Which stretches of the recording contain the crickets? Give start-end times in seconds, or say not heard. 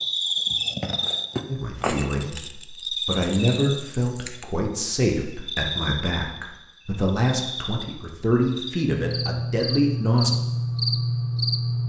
0.0-11.8.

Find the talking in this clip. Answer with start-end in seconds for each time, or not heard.
1.4-10.3.